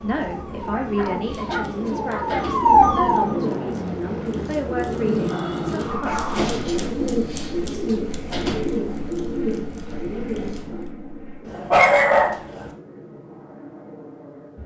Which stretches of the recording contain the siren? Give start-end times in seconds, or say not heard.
0.0-3.6.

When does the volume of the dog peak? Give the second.
12 s.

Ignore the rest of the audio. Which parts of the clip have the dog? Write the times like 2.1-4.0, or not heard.
0.7-2.5, 5.3-6.4, 11.4-12.7.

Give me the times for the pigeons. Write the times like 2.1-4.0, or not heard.
1.1-10.9.